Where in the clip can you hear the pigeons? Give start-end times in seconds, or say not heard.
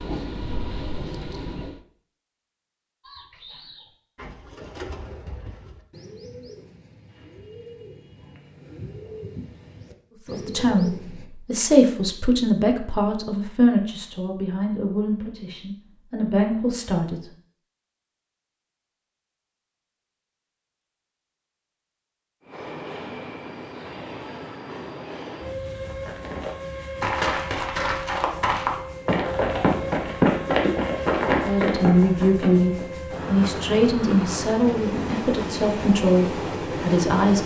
3.0-11.3.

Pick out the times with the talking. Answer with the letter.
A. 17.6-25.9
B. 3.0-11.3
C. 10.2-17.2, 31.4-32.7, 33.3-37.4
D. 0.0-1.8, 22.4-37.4
C.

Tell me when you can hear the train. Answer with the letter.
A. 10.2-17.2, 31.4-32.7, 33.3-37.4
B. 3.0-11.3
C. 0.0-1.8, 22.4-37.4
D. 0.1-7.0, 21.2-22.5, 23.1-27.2
C.